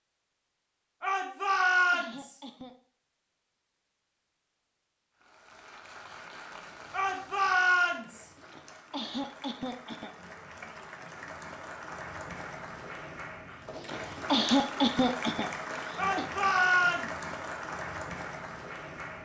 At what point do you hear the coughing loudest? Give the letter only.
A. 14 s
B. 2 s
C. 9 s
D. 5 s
A.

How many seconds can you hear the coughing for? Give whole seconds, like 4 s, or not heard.
6 s.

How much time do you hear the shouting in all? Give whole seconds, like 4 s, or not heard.
4 s.